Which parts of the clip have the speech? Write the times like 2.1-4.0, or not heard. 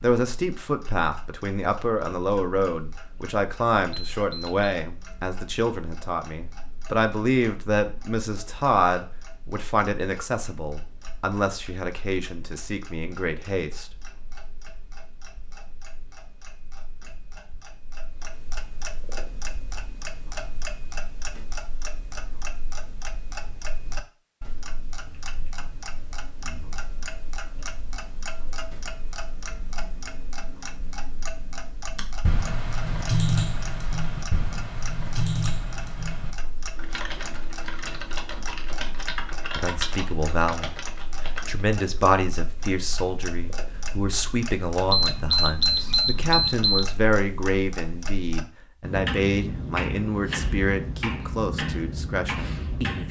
0.0-13.9, 39.5-40.8, 41.5-53.0.